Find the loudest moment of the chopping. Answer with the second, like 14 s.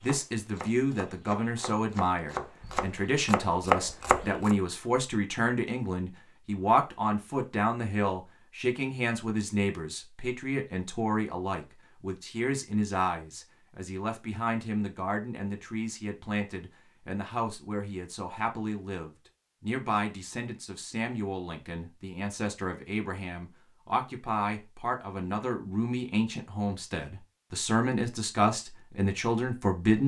4 s.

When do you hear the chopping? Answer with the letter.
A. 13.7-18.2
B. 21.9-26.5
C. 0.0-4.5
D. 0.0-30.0
C.